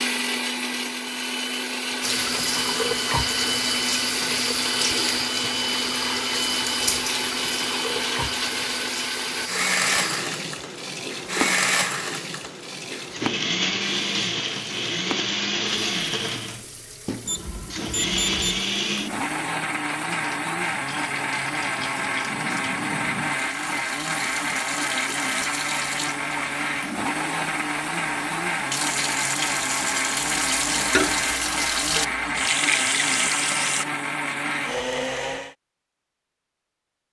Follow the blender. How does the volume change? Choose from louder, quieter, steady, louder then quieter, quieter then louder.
steady.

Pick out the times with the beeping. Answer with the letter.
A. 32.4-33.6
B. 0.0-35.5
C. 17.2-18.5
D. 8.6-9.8
C.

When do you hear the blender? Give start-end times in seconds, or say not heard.
0.0-35.5.